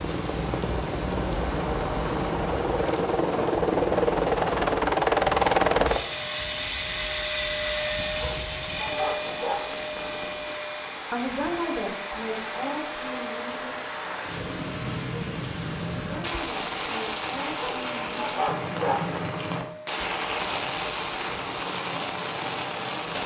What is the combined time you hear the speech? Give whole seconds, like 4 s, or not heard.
5 s.